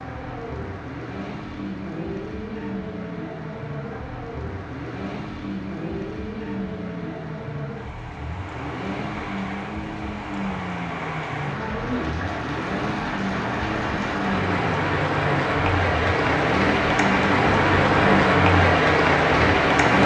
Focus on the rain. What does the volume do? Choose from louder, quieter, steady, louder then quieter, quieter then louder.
louder.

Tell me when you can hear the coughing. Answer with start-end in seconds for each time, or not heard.
not heard.